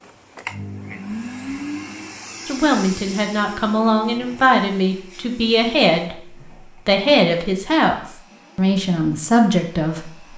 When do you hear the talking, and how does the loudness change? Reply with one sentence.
The talking can be heard from 2.5 to 10.3 s, at a steady volume.